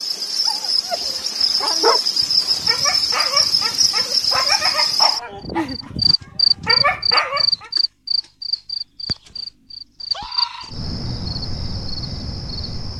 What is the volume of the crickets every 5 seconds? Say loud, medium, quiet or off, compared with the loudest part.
loud, loud, medium.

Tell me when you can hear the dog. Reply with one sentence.
The dog can be heard from 0.5 to 7.7 s.